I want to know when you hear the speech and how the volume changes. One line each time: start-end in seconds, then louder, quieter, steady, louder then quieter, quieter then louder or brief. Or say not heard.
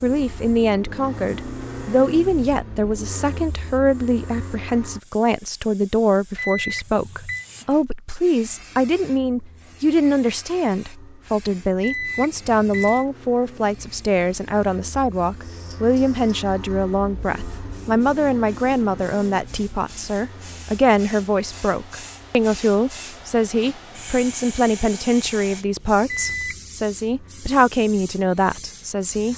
0.0-29.3 steady.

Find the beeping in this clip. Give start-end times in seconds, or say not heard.
6.3-7.5, 11.8-13.1, 26.1-26.7.